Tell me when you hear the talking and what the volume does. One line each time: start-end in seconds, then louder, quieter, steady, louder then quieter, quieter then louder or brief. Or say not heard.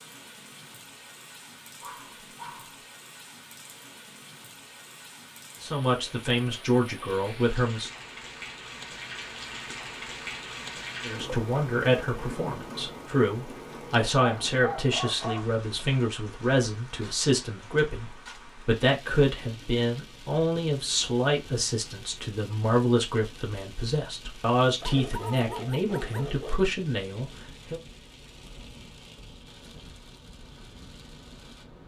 5.6-7.9 brief
11.1-27.8 steady.